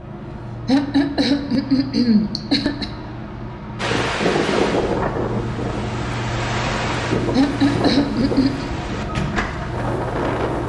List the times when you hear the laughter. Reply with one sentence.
You can hear the laughter from 0.7 to 2.9 s and from 7.3 to 8.7 s.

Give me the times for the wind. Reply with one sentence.
You can hear the wind from 3.8 to 10.6 s.